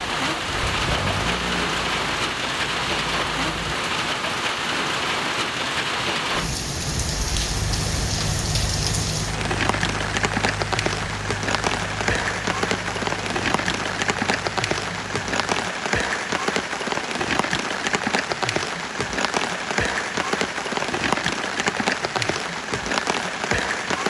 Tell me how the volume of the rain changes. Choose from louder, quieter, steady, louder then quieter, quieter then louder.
steady.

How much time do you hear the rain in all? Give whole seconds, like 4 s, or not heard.
24 s.